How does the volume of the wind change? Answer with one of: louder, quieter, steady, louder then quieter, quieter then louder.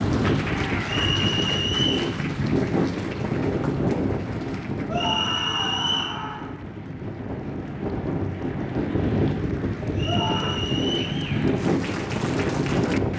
quieter then louder.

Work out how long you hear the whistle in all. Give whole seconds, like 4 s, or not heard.
4 s.